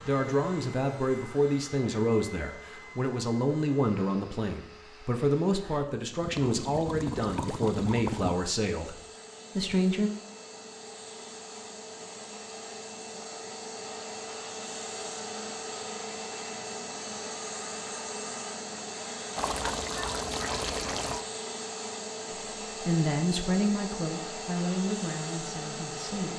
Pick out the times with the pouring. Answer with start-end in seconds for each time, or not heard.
5.6-8.3, 19.4-21.2.